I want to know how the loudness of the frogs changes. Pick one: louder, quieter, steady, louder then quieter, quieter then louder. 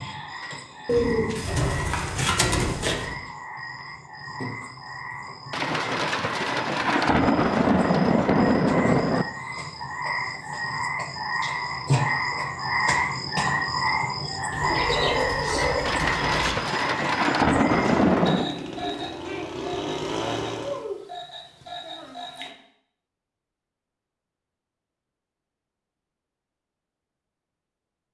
louder then quieter.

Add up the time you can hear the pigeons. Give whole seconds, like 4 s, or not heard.
4 s.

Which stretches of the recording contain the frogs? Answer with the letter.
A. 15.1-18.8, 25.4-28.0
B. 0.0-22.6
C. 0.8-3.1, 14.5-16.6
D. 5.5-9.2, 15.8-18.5
B.